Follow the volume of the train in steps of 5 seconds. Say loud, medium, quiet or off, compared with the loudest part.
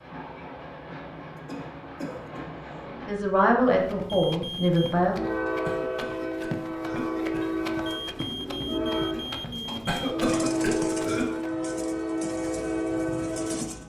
quiet, loud, loud.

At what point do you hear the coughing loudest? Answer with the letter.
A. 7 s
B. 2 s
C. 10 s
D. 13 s
C.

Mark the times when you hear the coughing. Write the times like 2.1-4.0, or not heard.
1.4-2.6, 5.5-7.5, 9.7-11.2.